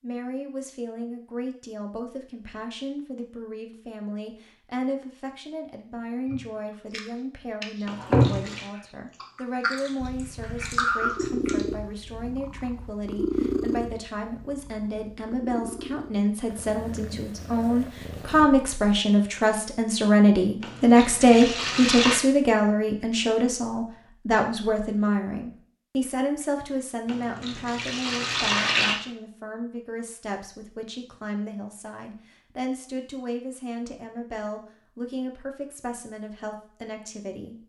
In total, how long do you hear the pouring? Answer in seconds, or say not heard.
4 s.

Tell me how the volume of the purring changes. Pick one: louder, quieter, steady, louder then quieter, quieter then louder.
quieter.